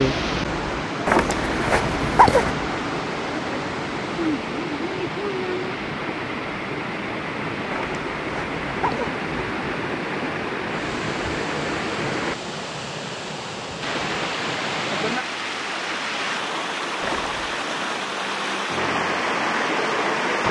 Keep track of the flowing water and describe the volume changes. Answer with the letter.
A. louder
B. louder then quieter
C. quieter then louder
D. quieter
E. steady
E.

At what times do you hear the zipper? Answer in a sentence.
The zipper can be heard from 1.1 to 2.5 s, from 7.7 to 9.2 s and from 17.0 to 17.6 s.